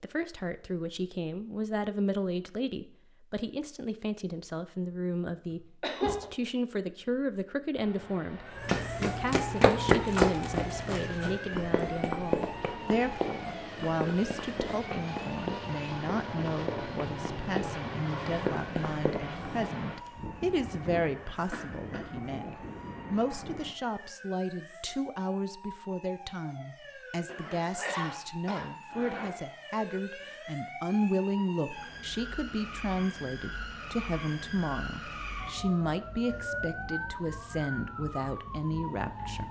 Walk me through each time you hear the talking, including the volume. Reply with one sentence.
You can hear the talking from 0.0 to 39.4 s, at a steady volume.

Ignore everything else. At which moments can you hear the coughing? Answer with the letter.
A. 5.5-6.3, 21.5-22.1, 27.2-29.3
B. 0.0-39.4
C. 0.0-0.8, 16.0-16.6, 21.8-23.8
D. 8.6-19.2
A.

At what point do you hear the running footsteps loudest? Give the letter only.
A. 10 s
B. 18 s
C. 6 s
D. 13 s
A.